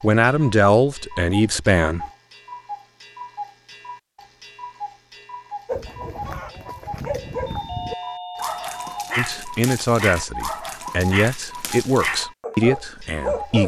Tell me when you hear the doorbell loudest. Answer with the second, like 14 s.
8 s.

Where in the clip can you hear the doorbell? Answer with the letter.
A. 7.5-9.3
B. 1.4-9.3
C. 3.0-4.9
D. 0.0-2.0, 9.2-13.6
A.